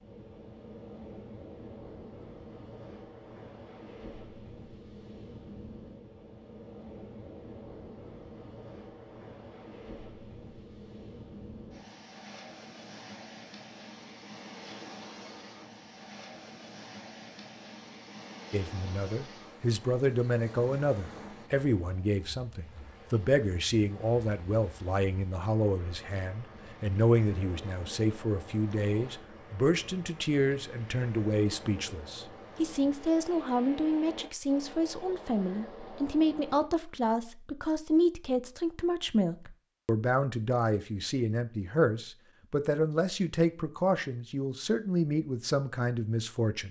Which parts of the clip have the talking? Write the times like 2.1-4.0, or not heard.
18.5-46.6.